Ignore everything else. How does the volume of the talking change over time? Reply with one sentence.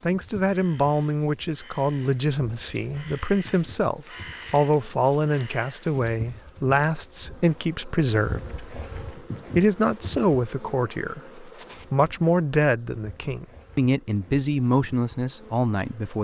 The volume of the talking stays about the same.